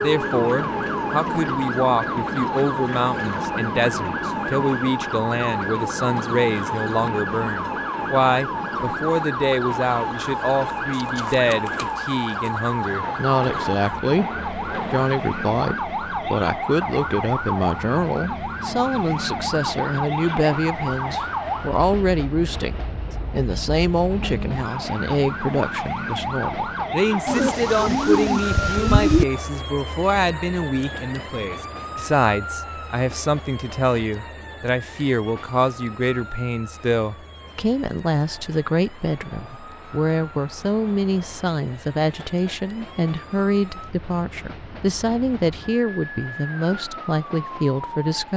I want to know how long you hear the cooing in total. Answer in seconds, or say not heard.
4 s.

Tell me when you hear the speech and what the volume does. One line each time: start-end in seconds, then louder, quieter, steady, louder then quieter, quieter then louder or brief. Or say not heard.
0.0-48.3 steady.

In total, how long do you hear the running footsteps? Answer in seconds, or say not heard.
not heard.